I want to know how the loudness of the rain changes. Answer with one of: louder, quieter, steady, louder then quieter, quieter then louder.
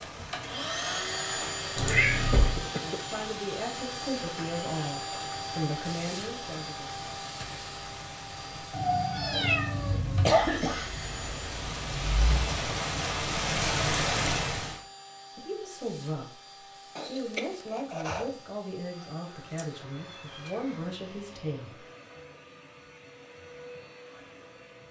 louder.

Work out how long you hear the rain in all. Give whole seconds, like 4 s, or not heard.
15 s.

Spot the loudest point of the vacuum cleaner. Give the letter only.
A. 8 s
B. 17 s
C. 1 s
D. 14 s
C.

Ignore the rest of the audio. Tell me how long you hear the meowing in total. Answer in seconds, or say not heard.
4 s.